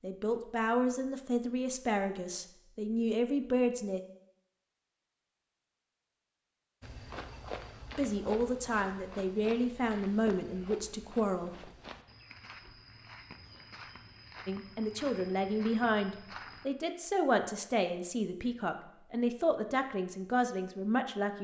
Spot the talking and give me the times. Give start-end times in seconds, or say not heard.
0.0-4.0, 8.0-11.7, 14.4-21.3.